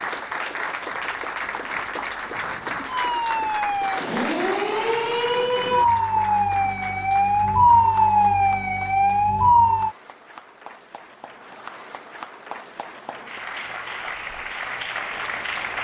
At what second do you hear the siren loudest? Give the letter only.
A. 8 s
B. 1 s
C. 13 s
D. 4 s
A.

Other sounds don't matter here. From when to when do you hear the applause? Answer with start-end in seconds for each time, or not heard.
0.0-15.7.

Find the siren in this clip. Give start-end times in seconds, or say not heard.
2.9-9.9.